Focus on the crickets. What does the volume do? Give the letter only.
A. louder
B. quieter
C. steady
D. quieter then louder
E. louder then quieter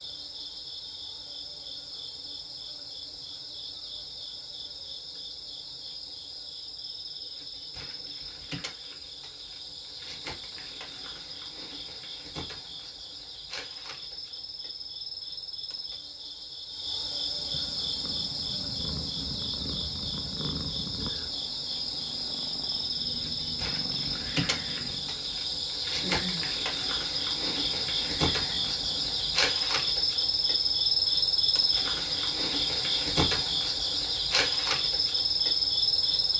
A.